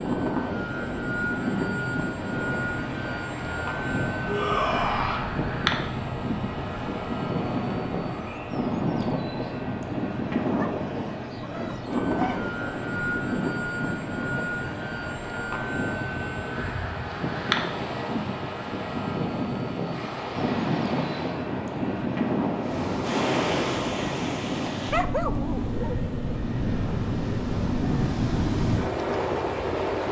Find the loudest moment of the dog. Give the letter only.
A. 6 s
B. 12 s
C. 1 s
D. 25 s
D.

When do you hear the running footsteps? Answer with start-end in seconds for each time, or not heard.
not heard.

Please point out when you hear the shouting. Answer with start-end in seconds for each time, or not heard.
4.2-5.2.